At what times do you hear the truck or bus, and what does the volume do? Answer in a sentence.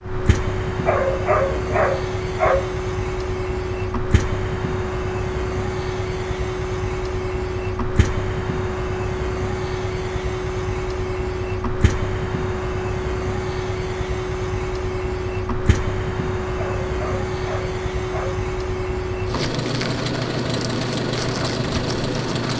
You can hear the truck or bus from 0.0 to 22.5 s, at a steady volume.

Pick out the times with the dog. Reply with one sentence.
The dog can be heard from 0.8 to 2.8 s and from 16.6 to 18.4 s.